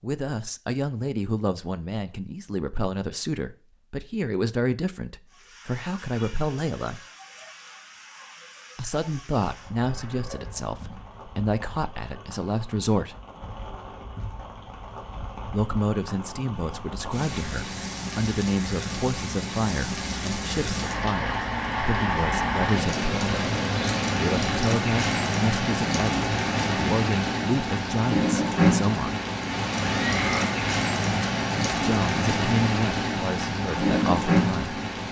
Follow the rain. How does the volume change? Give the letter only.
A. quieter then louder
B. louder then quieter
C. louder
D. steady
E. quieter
C.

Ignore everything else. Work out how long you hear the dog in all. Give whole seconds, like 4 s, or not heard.
not heard.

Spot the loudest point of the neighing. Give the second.
30 s.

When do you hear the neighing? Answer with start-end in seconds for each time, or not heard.
9.8-11.1, 29.6-30.6.